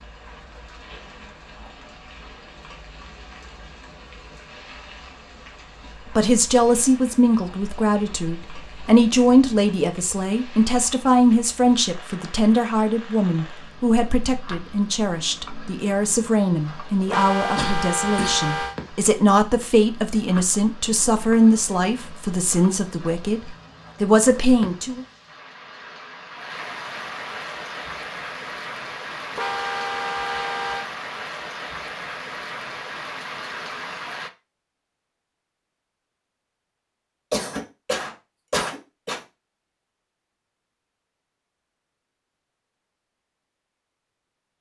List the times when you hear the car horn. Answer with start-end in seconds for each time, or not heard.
17.1-18.8, 29.3-30.9.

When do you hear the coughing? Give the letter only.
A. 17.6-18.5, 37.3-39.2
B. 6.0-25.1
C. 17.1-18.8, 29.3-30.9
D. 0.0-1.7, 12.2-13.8
A.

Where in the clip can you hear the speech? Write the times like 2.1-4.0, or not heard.
6.0-25.1.